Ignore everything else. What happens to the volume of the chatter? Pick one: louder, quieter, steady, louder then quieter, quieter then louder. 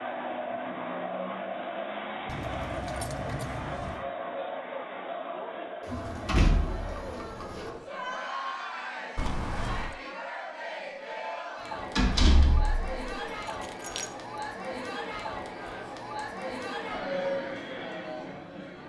steady.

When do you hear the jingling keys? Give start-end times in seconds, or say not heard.
2.2-4.0, 9.2-9.9, 13.2-14.1.